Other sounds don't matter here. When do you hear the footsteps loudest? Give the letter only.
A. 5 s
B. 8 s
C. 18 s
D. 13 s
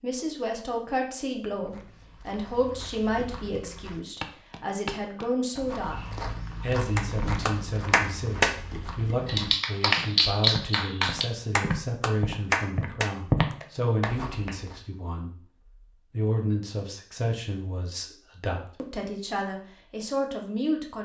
D.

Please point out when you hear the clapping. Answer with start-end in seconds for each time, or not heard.
7.0-8.5, 9.2-14.6.